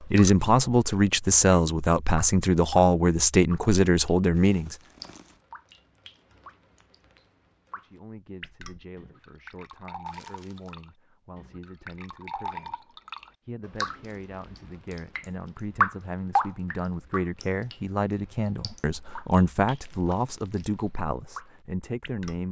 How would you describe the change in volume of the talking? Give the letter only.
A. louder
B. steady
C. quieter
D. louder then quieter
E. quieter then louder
E.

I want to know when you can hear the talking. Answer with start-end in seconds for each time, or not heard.
0.0-4.8, 7.8-22.4.